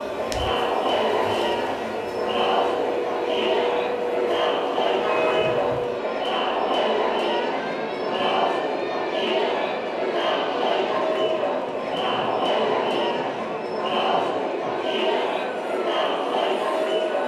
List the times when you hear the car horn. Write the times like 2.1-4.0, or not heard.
4.9-6.0.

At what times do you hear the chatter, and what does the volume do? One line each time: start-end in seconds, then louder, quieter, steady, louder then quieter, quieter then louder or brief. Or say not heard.
0.0-17.2 steady.